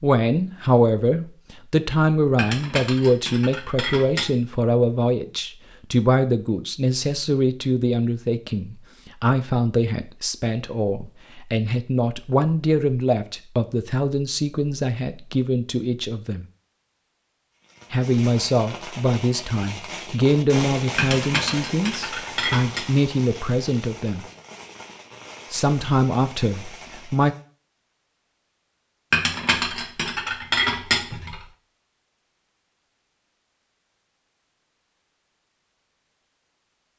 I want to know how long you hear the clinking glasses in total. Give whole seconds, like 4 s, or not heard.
6 s.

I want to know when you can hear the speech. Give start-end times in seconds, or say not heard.
0.0-16.4, 17.9-24.2, 25.5-27.4.